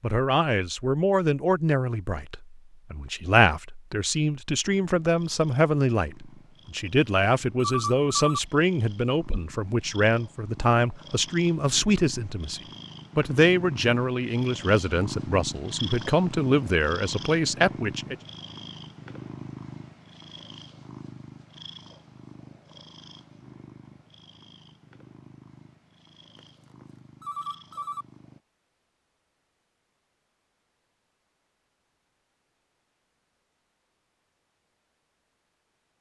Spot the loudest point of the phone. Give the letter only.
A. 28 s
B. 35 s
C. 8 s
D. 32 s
C.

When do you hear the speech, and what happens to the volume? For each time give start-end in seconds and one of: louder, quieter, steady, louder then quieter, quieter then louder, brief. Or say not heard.
0.0-18.1 steady.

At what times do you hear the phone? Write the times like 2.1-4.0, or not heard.
7.5-8.4, 27.2-28.1.